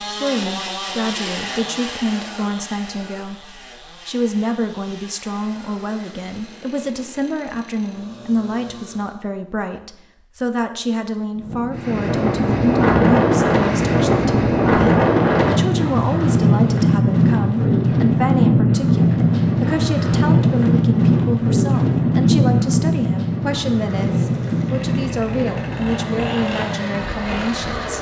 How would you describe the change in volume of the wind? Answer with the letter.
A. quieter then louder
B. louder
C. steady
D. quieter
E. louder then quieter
D.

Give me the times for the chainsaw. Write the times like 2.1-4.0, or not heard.
0.0-9.2, 23.9-27.9.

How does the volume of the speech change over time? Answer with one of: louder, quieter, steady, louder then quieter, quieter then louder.
steady.